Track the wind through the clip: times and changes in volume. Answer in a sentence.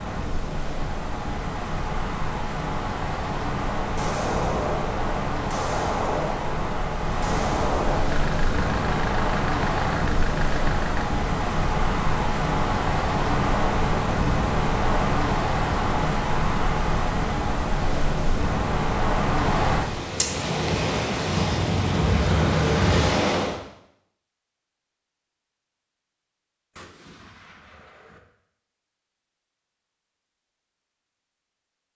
You can hear the wind from 0.0 to 23.6 s, getting louder.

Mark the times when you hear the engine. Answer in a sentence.
You can hear the engine from 8.1 to 11.1 s.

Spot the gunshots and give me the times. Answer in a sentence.
The gunshots can be heard from 4.0 to 8.1 s and from 26.8 to 28.2 s.